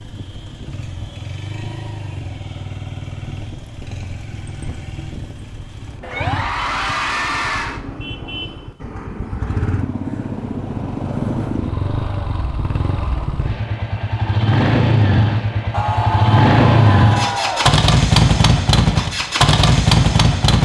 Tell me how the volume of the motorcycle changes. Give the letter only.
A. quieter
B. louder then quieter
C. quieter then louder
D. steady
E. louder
E.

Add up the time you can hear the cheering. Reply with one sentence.
The cheering can be heard for 4 seconds in total.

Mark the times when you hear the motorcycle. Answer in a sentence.
The motorcycle can be heard from 0.0 to 20.5 s.